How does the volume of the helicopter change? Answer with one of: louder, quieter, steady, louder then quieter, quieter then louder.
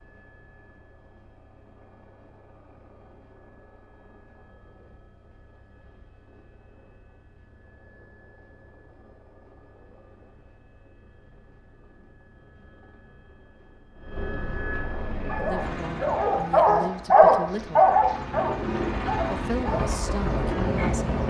louder.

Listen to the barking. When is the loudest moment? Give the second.
17 s.